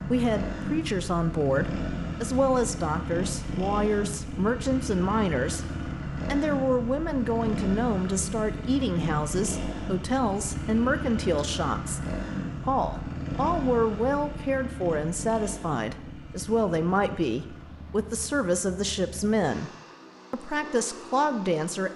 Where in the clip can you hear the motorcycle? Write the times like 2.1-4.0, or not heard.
0.0-21.9.